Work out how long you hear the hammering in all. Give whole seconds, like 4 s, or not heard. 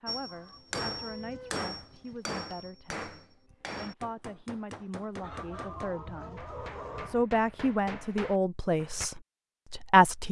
9 s.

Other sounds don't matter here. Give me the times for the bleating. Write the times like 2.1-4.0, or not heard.
not heard.